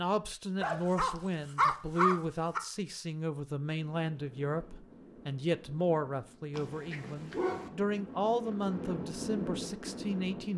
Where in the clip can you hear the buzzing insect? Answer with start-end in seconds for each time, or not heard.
not heard.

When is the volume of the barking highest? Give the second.
2 s.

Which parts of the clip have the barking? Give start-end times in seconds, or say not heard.
0.6-2.6, 6.5-7.7.